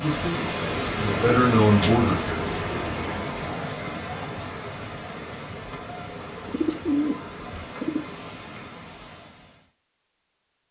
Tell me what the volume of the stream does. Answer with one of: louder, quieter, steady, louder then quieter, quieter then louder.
quieter.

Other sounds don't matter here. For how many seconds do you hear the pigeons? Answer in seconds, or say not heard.
4 s.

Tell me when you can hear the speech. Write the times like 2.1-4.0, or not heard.
0.0-2.4.